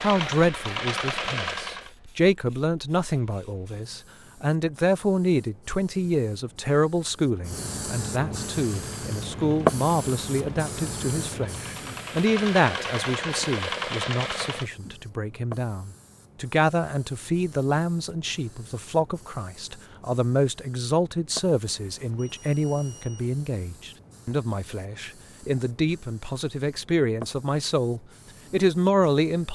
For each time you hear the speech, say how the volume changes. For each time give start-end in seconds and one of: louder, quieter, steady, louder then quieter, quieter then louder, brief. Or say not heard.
0.0-29.5 steady.